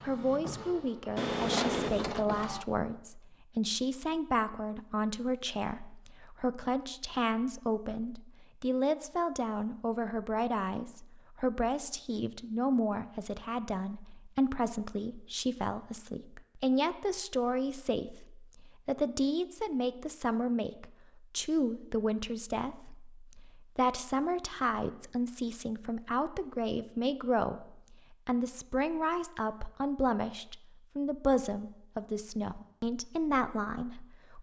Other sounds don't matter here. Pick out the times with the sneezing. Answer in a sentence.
You can't hear the sneezing here.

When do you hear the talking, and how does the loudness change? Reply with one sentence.
You can hear the talking from 0.0 to 34.3 s, at a steady volume.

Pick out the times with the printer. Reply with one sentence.
The printer can be heard from 0.0 to 2.6 s.